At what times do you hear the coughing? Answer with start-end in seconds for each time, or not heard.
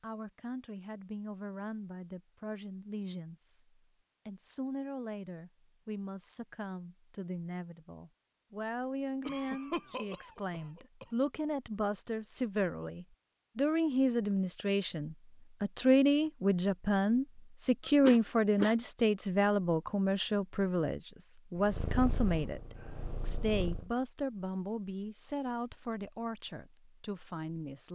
9.2-11.1, 18.0-18.8.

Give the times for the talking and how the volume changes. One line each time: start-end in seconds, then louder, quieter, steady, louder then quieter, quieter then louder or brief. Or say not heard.
0.0-27.9 louder then quieter.